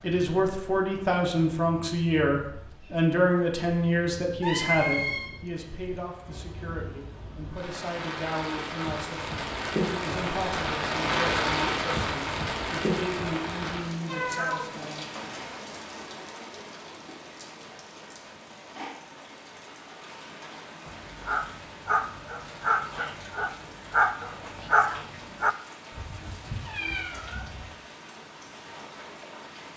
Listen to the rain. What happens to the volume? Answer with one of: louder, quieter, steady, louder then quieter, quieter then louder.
louder then quieter.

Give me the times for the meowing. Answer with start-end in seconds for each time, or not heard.
4.4-5.3, 14.1-14.7, 25.9-27.6.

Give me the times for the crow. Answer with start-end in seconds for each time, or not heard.
not heard.